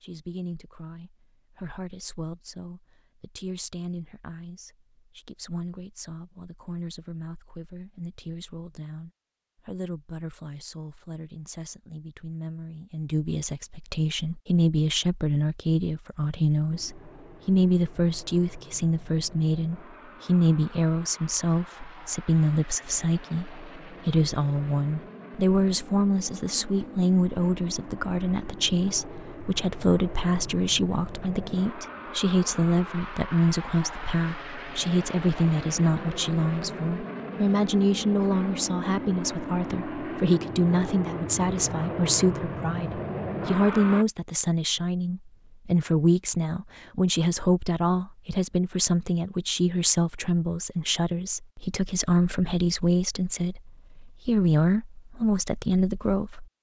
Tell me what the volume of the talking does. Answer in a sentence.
The volume of the talking goes up.